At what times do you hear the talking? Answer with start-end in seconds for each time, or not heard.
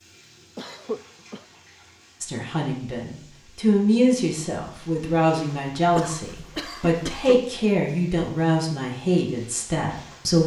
2.2-10.4.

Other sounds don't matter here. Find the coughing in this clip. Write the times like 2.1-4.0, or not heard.
0.6-1.4, 5.9-7.5.